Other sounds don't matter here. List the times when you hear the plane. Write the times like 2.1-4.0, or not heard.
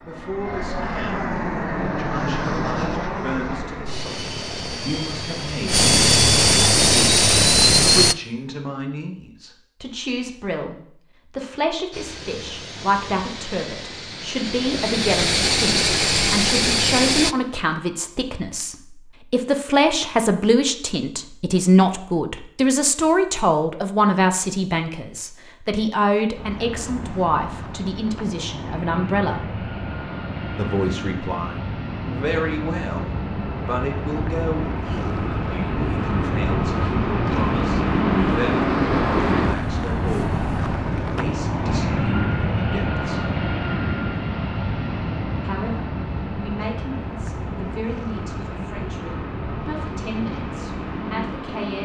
0.0-8.2, 11.9-17.4, 26.4-51.7.